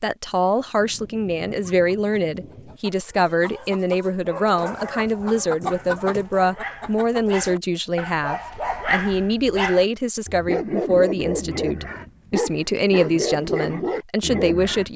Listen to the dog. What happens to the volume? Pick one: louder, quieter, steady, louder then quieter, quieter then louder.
louder.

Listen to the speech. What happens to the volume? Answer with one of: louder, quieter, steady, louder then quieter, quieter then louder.
steady.